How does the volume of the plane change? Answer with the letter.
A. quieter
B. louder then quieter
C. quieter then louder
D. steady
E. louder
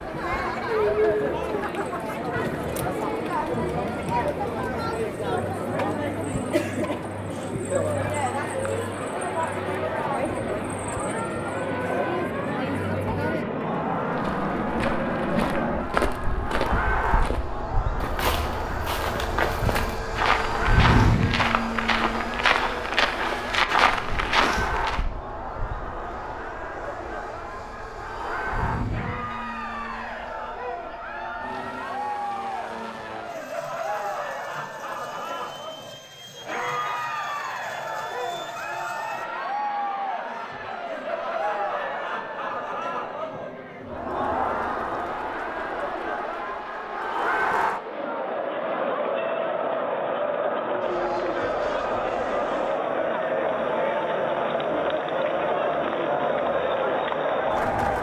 A.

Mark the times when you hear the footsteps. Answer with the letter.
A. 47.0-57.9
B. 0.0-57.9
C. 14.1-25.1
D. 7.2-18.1
C.